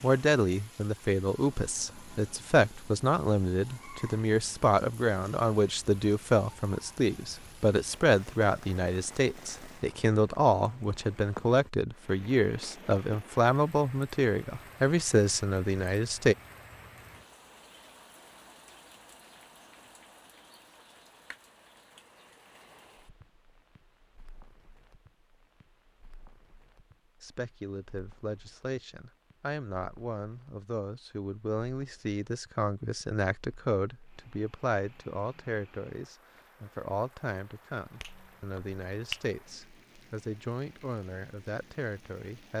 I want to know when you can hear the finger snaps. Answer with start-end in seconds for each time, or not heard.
38.0-39.3.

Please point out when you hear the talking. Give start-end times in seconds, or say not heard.
0.0-16.4, 27.2-42.5.